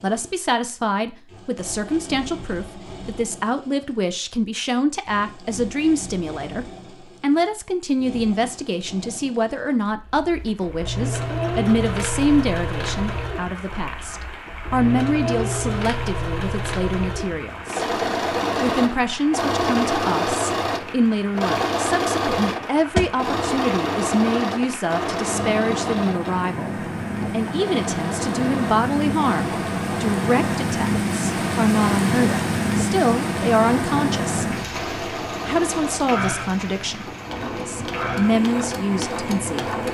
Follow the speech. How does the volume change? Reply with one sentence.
The volume of the speech stays about the same.